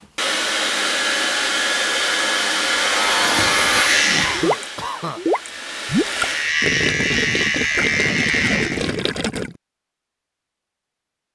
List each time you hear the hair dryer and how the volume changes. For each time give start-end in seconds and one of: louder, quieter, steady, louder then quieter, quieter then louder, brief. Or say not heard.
0.0-6.5 quieter.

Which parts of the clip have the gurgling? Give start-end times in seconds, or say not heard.
4.3-9.6.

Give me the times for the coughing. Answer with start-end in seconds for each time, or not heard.
4.2-5.2.